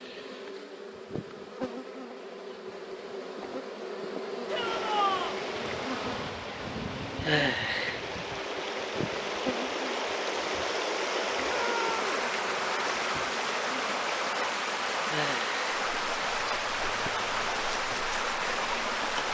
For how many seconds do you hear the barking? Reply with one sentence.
You can't hear the barking here.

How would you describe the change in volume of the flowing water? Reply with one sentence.
The loudness of the flowing water goes up.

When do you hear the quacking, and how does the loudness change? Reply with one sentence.
The quacking can't be heard in this clip.